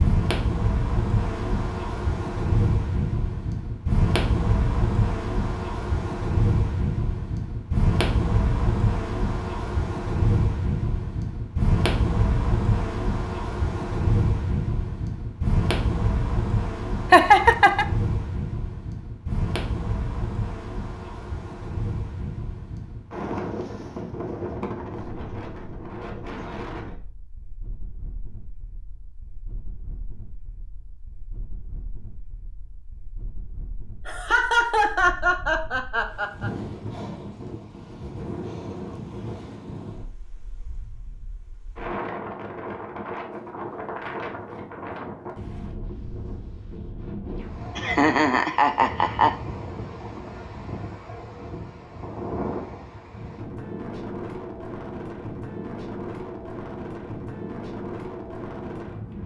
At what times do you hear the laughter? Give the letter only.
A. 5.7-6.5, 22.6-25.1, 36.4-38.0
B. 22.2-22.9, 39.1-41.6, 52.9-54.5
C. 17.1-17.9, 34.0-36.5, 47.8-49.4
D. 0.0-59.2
C.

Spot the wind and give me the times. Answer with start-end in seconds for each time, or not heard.
0.0-59.2.